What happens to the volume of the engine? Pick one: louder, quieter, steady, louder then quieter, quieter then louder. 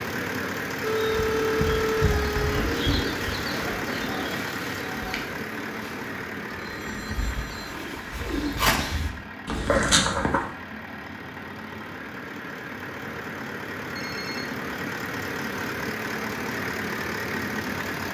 quieter then louder.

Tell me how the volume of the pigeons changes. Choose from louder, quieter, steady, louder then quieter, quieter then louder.
quieter then louder.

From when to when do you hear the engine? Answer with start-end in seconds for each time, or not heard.
0.0-18.0.